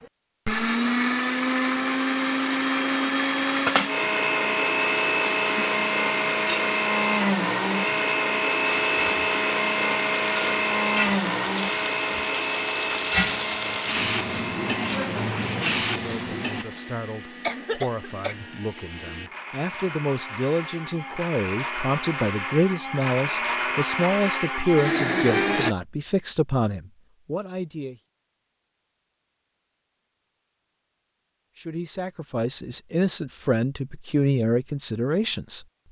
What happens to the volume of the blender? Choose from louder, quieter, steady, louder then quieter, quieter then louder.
quieter then louder.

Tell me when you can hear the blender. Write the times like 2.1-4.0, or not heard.
0.0-25.8.